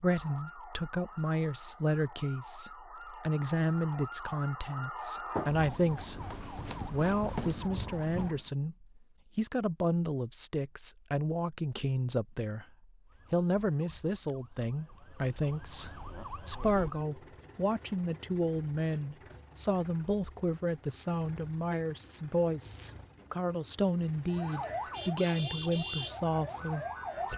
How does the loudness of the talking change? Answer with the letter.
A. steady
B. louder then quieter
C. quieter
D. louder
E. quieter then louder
A.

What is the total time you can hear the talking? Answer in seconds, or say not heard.
27 s.